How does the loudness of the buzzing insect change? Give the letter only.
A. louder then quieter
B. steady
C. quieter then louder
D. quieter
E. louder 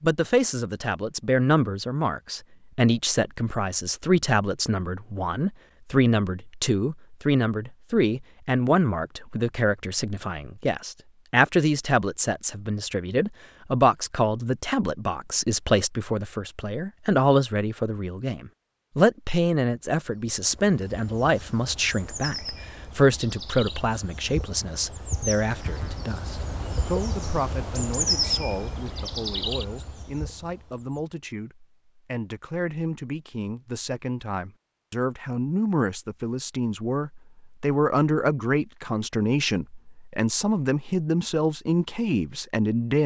A.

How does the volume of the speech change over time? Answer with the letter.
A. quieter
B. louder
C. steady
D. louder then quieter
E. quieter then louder
E.